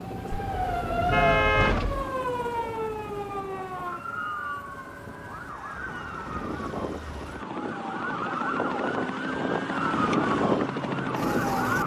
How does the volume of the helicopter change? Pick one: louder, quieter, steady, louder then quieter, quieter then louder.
quieter then louder.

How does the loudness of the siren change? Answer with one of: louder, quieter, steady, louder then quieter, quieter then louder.
quieter then louder.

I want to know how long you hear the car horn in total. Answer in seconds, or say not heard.
2 s.